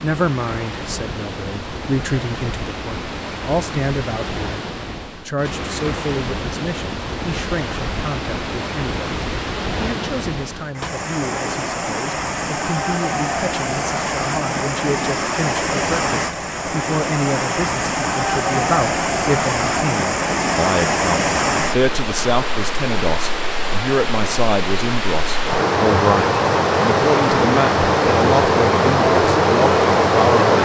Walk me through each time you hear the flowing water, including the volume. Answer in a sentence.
You can hear the flowing water from 0.0 to 30.6 s, getting louder.